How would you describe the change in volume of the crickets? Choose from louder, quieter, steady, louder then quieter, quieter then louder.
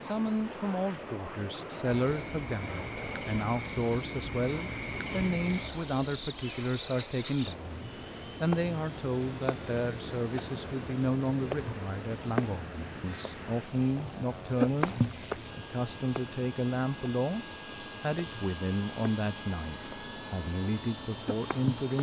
louder then quieter.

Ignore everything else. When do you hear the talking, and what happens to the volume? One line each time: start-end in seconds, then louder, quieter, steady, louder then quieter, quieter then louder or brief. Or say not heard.
0.0-21.9 steady.